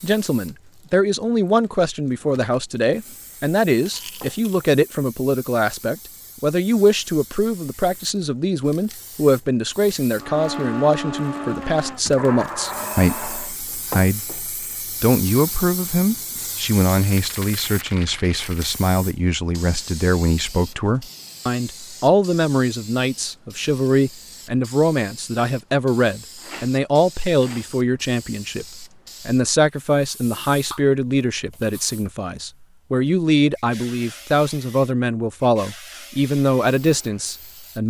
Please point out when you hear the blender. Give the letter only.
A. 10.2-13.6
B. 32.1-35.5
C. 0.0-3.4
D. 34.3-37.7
A.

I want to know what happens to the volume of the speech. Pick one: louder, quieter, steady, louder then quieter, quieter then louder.
steady.